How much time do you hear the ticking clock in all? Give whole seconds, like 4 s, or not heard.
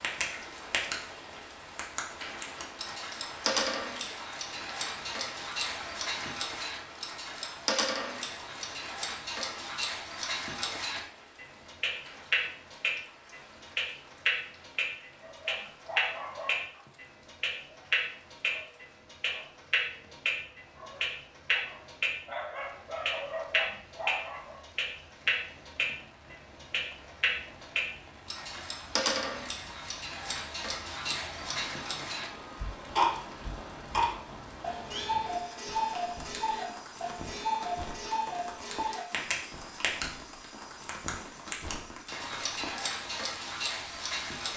43 s.